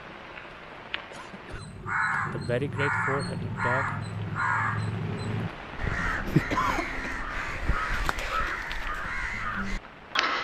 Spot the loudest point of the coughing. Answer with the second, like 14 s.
7 s.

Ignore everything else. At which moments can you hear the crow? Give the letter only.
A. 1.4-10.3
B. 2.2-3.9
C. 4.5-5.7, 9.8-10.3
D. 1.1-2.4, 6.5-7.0
A.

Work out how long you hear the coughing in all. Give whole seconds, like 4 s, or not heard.
2 s.